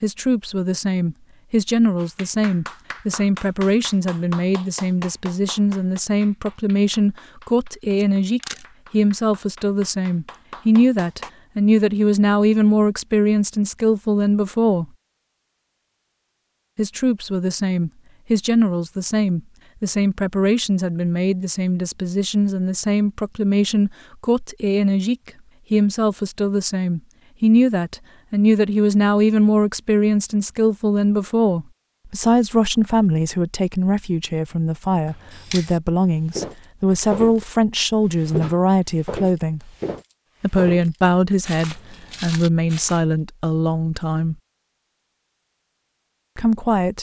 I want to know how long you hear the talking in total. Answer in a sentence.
The talking can be heard for 42 seconds in total.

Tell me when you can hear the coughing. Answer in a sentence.
You can't hear the coughing here.